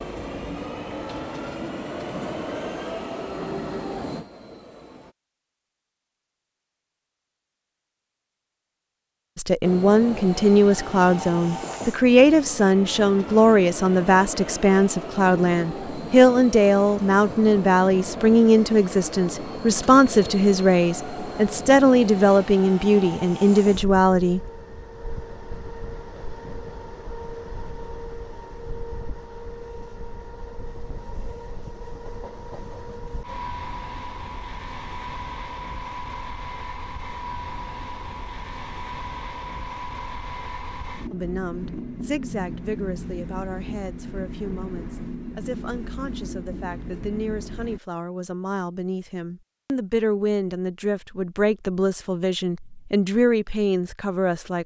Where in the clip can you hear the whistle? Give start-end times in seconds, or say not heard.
not heard.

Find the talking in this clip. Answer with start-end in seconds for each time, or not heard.
9.3-24.4, 41.1-54.6.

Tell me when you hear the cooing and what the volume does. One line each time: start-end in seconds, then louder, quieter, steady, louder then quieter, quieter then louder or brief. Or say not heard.
not heard.